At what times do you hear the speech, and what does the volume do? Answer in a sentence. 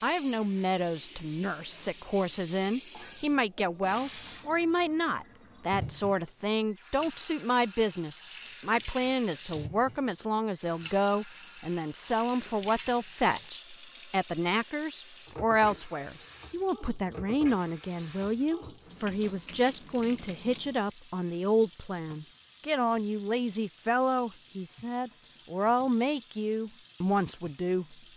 The speech can be heard from 0.0 to 27.9 s, at a steady volume.